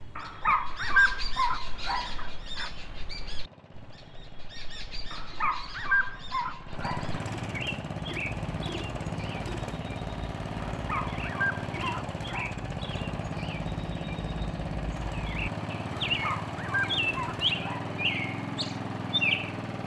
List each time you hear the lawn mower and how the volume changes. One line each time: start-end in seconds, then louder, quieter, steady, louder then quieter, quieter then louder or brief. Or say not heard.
1.6-19.8 louder.